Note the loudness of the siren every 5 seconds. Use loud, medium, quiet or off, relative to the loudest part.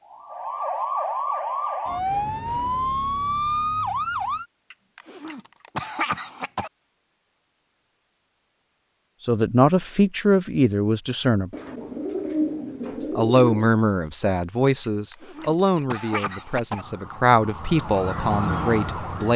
loud, off, off, medium.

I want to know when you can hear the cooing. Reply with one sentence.
The cooing can be heard from 11.5 to 13.7 s.